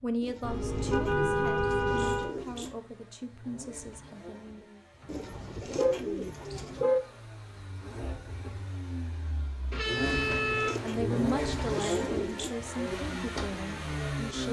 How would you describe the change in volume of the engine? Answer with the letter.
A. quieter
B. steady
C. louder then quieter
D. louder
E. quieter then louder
D.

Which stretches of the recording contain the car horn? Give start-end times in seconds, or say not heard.
0.4-2.4, 5.0-6.0, 6.5-7.0, 9.7-10.9.